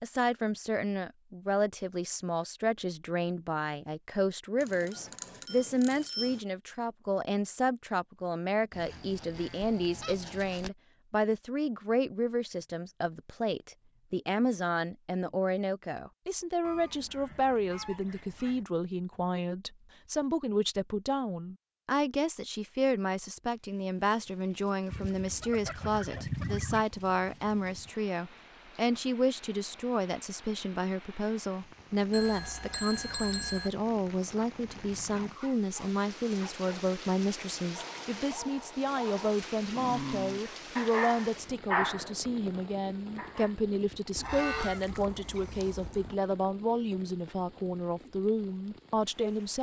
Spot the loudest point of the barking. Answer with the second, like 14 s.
42 s.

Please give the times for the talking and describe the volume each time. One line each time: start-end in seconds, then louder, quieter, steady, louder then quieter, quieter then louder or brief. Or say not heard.
0.0-49.5 steady.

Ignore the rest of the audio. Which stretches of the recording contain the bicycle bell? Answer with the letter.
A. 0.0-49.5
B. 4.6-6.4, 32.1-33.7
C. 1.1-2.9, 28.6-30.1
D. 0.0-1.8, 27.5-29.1
B.